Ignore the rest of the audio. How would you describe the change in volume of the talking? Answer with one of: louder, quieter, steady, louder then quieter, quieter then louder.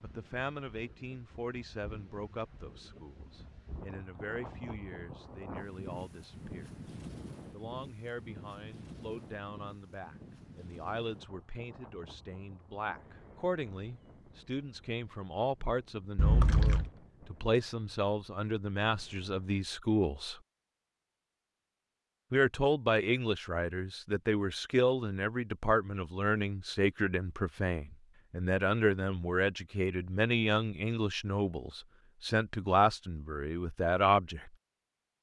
louder.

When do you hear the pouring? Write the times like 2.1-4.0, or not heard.
16.1-16.9.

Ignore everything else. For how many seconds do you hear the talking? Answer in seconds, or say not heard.
32 s.